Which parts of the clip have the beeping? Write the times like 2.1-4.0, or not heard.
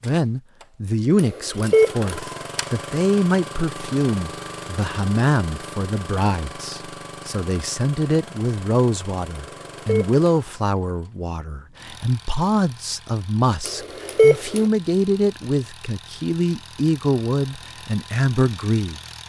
1.1-2.1, 9.3-10.2, 13.7-14.7.